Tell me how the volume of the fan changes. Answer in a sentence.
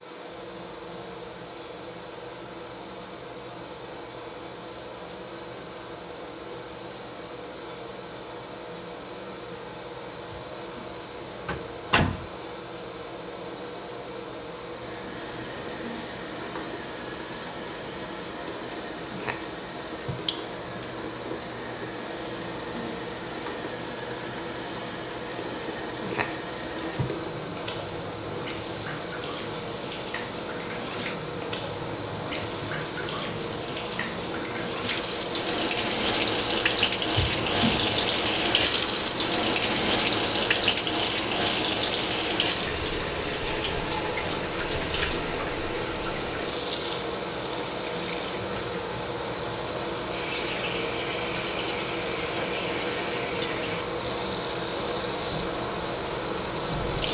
The loudness of the fan goes up.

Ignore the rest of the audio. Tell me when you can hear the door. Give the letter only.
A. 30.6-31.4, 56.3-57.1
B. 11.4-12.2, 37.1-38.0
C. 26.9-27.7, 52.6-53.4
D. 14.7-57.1
B.